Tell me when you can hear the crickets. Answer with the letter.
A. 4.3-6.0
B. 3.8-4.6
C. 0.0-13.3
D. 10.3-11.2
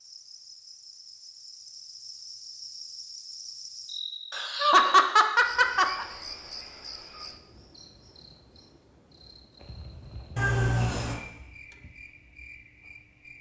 C.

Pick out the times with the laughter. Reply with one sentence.
The laughter can be heard from 4.3 to 6.0 s.